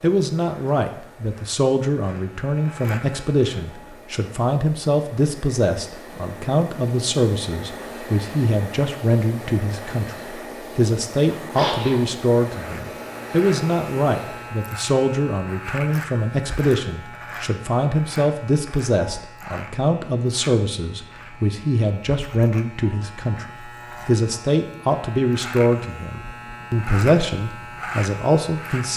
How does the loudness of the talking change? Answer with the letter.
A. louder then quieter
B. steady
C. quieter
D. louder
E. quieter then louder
B.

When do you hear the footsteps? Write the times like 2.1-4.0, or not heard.
not heard.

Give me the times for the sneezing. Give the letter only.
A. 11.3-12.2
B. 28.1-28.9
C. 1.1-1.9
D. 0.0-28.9
A.